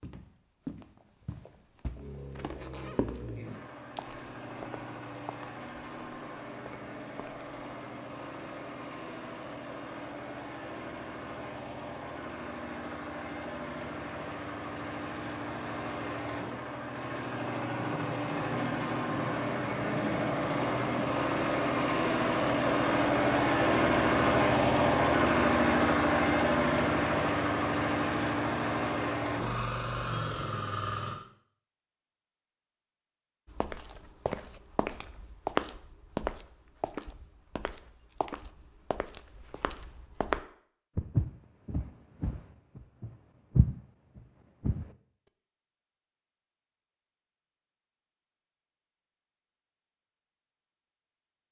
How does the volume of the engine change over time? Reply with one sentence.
The volume of the engine goes up.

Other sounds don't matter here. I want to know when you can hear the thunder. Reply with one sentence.
The thunder can be heard from 17.9 to 21.1 s.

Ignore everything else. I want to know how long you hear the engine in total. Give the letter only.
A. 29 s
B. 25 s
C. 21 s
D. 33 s
A.